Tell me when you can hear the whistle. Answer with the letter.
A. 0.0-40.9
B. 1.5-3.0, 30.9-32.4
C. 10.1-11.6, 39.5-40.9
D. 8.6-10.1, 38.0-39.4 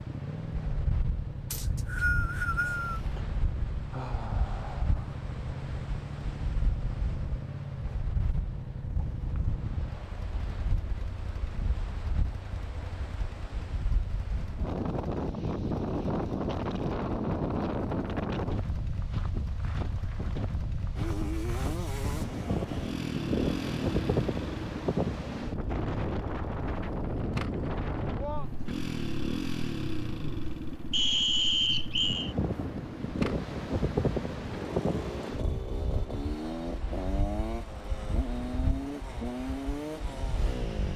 B.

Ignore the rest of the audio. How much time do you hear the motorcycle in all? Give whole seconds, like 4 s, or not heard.
41 s.